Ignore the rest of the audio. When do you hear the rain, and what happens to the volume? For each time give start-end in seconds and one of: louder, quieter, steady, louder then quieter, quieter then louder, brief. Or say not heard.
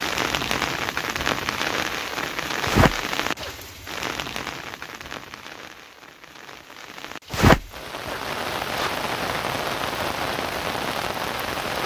0.0-11.8 quieter then louder.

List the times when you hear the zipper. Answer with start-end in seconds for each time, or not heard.
2.6-3.5, 7.3-8.9.